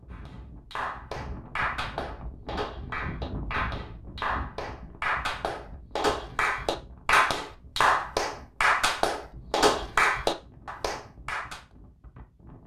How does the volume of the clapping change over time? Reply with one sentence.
The loudness of the clapping goes up.